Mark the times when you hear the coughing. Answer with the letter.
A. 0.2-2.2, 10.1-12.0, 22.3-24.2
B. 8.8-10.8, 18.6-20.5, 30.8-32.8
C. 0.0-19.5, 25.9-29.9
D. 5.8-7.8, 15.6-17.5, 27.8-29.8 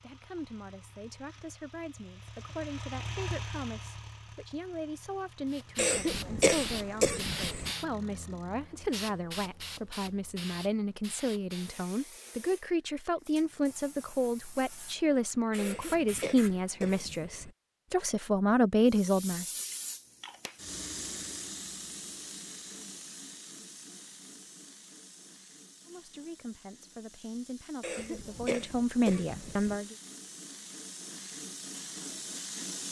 D.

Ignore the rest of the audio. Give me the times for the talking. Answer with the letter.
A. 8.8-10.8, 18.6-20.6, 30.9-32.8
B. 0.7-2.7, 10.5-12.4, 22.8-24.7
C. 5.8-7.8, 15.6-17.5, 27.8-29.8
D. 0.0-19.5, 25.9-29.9
D.